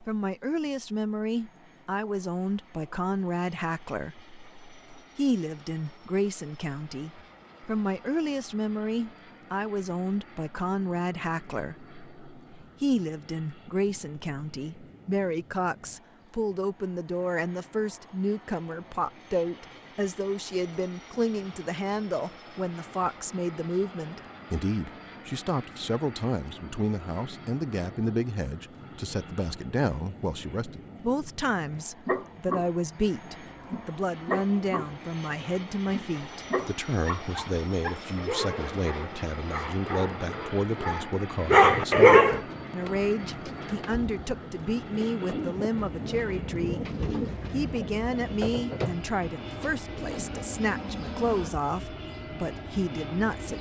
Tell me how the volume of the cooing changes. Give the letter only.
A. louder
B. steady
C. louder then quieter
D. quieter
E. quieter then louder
A.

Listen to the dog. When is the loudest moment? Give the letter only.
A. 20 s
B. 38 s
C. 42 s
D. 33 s
C.